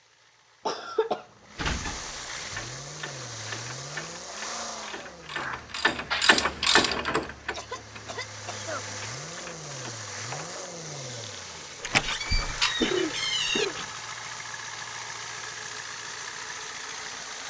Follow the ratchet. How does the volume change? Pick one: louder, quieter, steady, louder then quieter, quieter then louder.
louder then quieter.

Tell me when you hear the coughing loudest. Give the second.
13 s.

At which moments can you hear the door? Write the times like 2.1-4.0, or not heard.
1.6-2.8, 11.8-13.7.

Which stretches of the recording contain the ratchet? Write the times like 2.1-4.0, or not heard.
2.5-12.7.